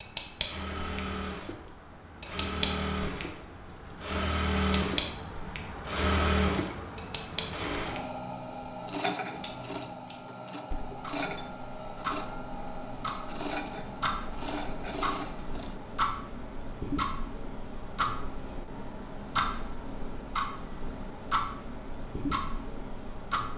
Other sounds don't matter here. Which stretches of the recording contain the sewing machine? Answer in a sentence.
You can hear the sewing machine from 0.0 to 15.8 s.